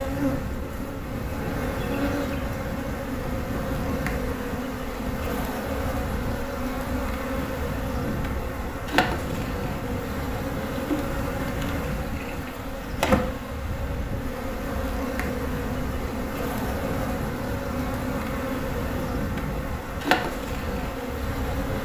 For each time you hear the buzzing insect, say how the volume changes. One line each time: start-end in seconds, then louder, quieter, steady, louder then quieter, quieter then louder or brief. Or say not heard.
0.0-21.7 steady.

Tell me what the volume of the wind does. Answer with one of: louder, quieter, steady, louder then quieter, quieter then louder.
steady.